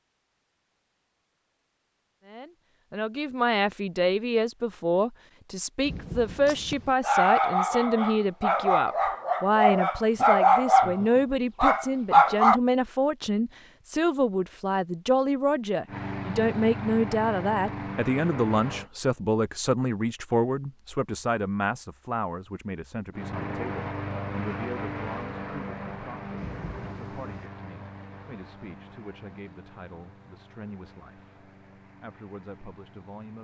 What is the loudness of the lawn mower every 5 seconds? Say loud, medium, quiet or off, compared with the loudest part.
off, off, off, loud, loud, medium, quiet.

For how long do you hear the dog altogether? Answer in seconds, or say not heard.
6 s.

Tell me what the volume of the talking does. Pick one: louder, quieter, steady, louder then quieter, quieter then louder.
quieter.